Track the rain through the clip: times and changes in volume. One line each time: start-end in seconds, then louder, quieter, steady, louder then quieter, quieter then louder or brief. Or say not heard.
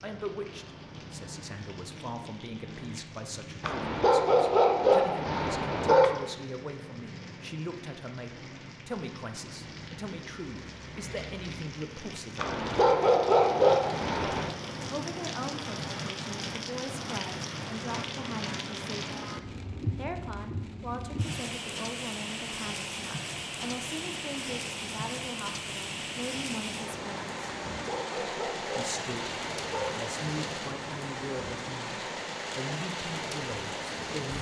0.0-34.3 louder.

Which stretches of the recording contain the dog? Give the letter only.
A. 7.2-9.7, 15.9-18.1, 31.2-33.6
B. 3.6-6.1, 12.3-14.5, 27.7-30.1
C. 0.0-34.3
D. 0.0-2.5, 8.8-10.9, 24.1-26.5
B.